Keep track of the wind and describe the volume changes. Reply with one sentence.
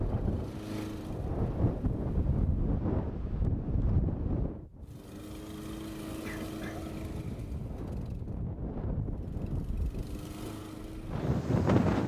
The volume of the wind goes down, then up.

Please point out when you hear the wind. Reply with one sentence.
The wind can be heard from 0.0 to 12.0 s.